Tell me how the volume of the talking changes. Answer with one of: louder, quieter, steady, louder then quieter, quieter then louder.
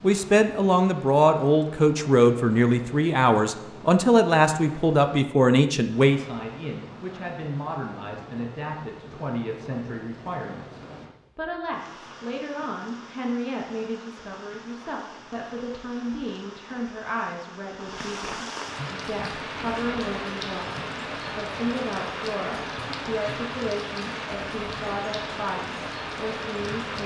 quieter.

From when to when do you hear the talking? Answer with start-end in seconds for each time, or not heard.
0.0-27.0.